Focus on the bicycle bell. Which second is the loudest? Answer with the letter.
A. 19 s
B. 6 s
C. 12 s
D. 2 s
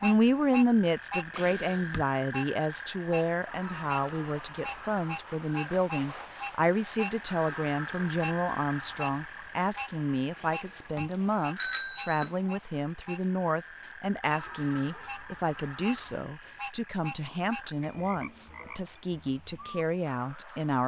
C.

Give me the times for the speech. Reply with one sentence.
You can hear the speech from 0.0 to 20.8 s.